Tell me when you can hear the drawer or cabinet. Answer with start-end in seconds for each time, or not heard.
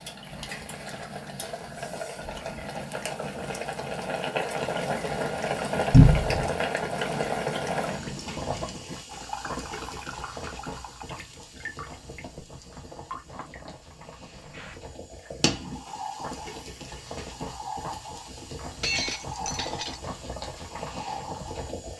5.9-6.5.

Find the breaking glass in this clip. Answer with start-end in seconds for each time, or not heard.
18.8-20.0.